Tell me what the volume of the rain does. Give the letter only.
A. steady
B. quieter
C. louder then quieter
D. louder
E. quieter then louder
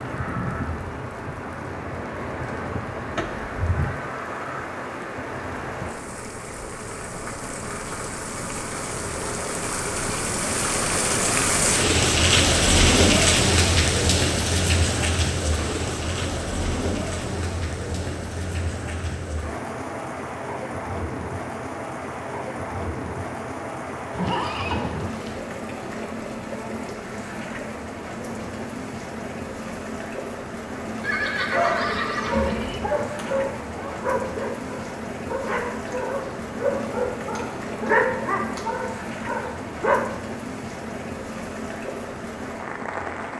C.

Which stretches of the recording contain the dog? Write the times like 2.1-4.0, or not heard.
31.5-40.0.